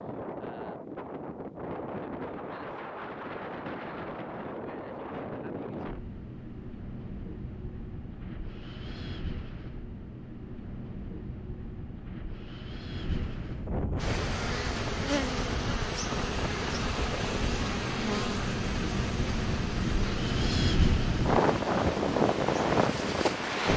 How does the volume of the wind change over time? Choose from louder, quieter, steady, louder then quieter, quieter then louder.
louder.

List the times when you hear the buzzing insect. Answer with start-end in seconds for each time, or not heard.
13.9-23.7.